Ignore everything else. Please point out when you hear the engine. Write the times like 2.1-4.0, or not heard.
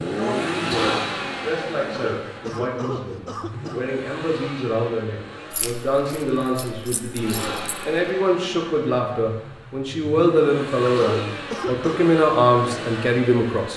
0.0-13.7.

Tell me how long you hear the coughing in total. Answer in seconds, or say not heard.
3 s.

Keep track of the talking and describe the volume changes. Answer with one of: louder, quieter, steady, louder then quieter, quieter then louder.
louder.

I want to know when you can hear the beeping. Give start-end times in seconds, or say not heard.
not heard.